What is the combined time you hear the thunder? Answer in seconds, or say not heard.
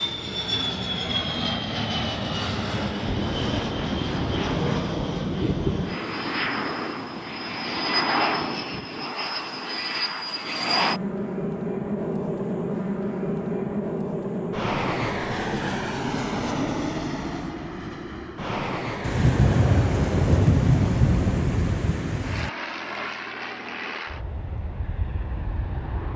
6 s.